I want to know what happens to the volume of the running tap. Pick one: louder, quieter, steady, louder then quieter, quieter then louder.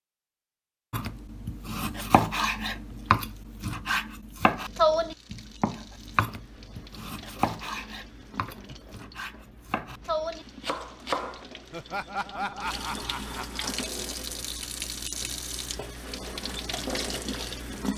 louder.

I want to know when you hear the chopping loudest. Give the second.
5 s.